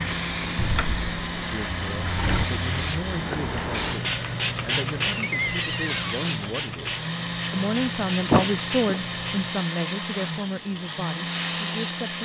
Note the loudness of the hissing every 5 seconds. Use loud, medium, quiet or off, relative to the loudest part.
loud, loud, medium.